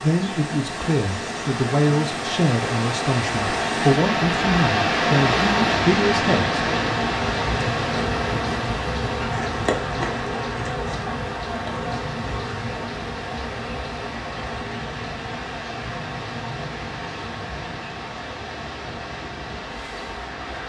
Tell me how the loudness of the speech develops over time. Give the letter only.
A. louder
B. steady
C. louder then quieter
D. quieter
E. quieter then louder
B.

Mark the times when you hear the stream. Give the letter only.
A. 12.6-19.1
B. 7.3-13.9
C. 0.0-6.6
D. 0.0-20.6
D.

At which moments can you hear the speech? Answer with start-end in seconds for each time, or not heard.
0.0-6.6.